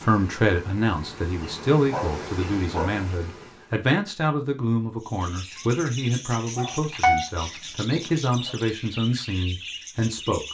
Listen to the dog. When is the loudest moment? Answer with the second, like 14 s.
7 s.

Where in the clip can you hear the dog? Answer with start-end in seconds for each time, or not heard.
1.9-3.0, 6.5-8.6.